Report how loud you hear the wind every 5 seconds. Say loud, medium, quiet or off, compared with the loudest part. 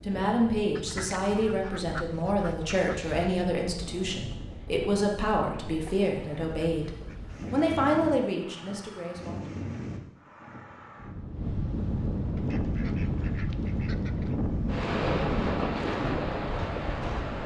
quiet, medium, loud, loud.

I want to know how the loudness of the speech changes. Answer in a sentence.
The loudness of the speech stays about the same.